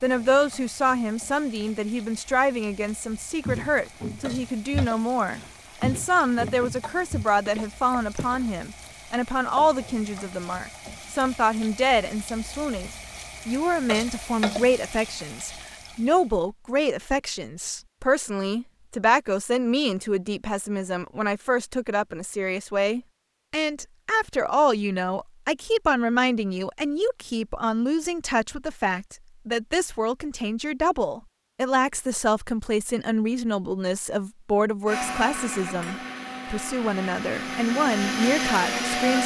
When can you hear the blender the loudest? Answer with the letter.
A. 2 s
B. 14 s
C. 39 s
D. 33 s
C.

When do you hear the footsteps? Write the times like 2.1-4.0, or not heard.
3.4-8.5.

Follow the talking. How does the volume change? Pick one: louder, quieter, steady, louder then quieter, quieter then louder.
steady.